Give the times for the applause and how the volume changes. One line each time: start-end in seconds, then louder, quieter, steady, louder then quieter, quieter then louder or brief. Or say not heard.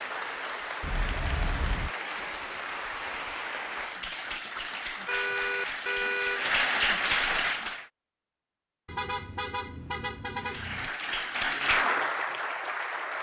0.0-7.8 louder
10.4-13.1 brief.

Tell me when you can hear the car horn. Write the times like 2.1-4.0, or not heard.
0.8-1.9, 5.0-6.5, 8.8-10.9.